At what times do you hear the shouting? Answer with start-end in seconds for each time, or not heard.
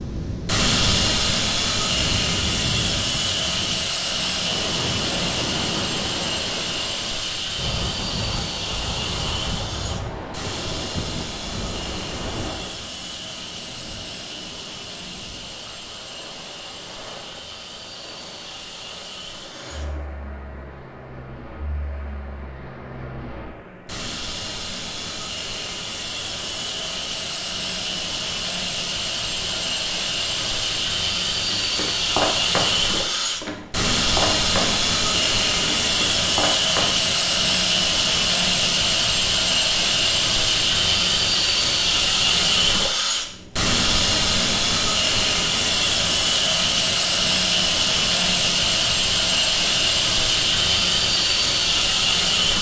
not heard.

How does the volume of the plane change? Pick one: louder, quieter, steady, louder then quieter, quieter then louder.
quieter then louder.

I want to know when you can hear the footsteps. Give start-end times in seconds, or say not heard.
31.4-37.0.